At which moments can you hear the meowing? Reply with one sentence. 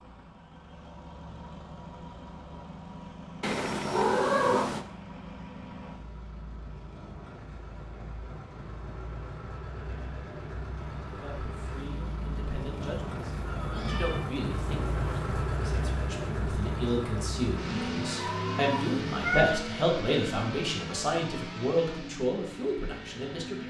The meowing can be heard from 3.4 to 4.8 s, from 13.4 to 14.2 s and from 18.2 to 19.6 s.